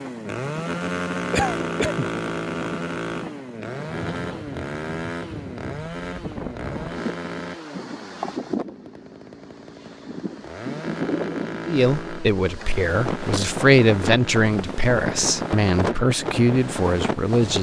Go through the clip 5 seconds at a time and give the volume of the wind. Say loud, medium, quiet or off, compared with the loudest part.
medium, medium, loud, loud.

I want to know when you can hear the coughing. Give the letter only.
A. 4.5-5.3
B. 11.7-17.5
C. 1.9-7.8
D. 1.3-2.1
D.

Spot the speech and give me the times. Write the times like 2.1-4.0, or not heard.
11.7-17.5.